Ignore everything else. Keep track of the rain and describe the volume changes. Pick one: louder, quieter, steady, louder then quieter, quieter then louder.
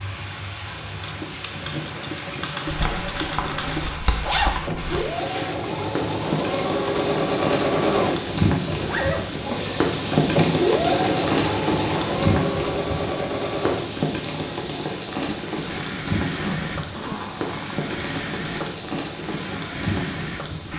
louder then quieter.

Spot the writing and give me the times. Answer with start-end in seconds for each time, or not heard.
2.6-5.0.